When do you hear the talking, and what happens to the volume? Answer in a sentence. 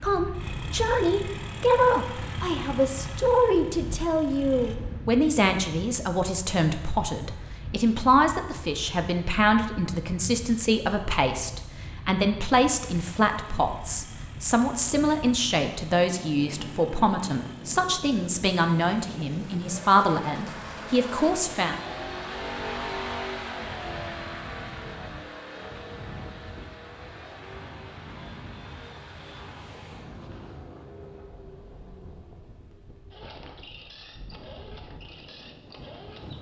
You can hear the talking from 0.0 to 21.8 s, at a steady volume.